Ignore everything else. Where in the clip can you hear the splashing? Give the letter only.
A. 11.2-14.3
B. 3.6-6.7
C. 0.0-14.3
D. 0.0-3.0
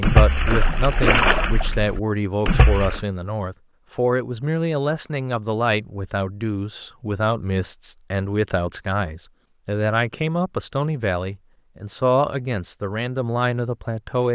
D.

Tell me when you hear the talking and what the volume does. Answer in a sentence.
The talking can be heard from 0.0 to 14.3 s, at a steady volume.